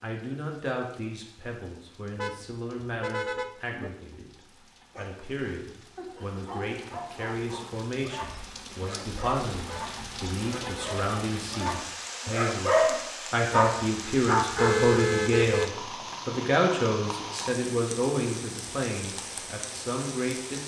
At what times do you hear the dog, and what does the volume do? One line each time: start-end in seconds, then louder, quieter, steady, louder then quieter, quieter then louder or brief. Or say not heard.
4.9-14.9 louder.